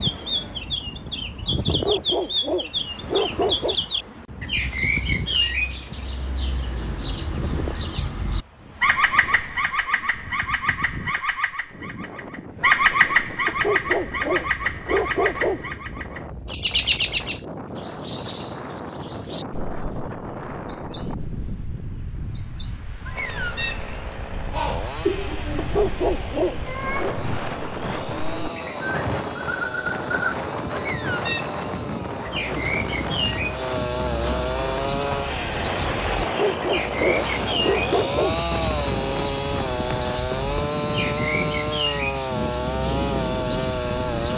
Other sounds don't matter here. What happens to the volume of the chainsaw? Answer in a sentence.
The loudness of the chainsaw goes up.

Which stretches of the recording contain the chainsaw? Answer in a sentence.
You can hear the chainsaw from 23.1 to 44.3 s.